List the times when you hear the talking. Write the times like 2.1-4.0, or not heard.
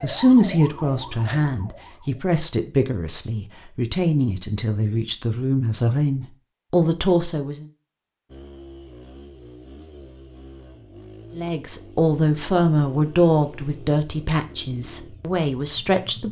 0.0-7.7, 11.3-16.2.